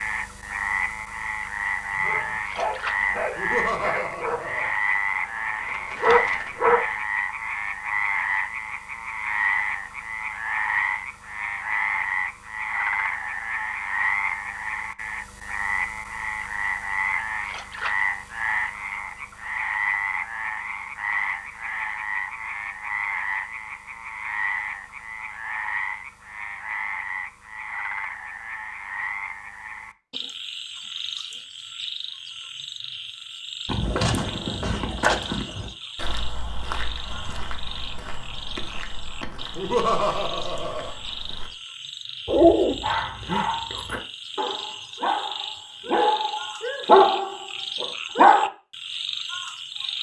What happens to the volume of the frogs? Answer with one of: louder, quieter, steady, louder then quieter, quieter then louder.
quieter.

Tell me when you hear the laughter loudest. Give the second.
40 s.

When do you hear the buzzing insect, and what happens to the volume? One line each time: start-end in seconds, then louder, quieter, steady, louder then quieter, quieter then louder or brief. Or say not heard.
not heard.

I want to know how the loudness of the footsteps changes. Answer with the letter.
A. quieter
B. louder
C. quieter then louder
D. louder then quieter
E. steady
A.